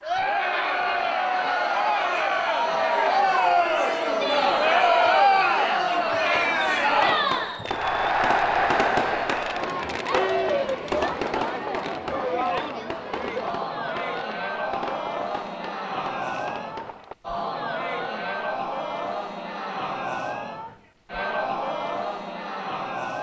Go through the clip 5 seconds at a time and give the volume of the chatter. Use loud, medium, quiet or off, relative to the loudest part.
loud, loud, medium, medium, medium.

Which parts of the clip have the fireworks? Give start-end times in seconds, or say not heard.
6.2-17.1.